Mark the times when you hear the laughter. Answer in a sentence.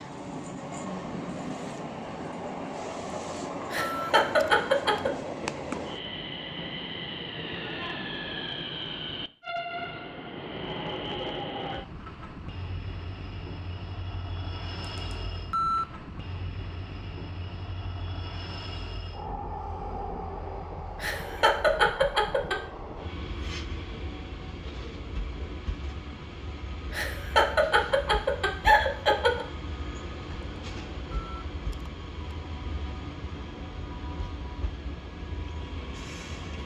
The laughter can be heard from 3.7 to 5.1 s, from 21.0 to 22.6 s and from 26.9 to 29.4 s.